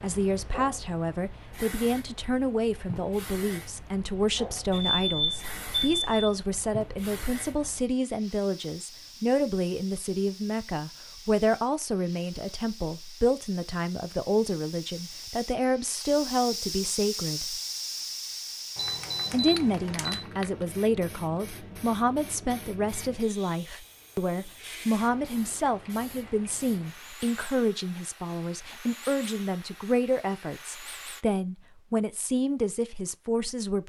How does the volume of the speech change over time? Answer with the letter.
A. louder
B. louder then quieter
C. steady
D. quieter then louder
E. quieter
C.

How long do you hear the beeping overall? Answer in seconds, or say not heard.
3 s.